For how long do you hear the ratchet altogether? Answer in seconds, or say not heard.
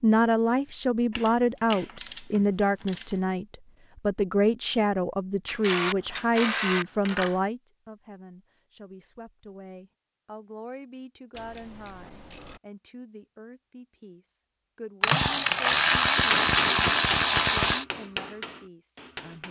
8 s.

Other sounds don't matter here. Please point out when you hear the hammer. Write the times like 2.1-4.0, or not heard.
16.1-19.4.